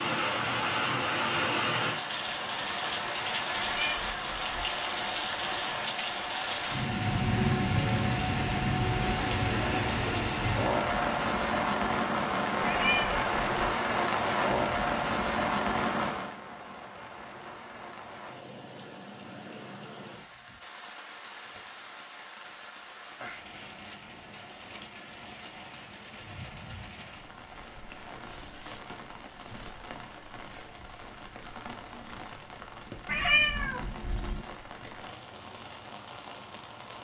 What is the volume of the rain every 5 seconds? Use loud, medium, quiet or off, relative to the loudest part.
loud, loud, loud, medium, quiet, quiet, quiet, quiet.